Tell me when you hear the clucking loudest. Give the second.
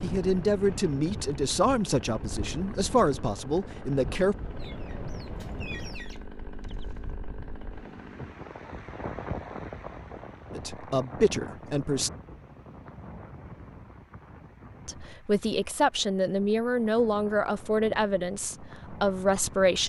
6 s.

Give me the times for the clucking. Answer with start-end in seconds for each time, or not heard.
4.5-7.2.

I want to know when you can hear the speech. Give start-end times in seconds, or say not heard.
0.0-4.3, 10.6-12.1, 14.8-19.8.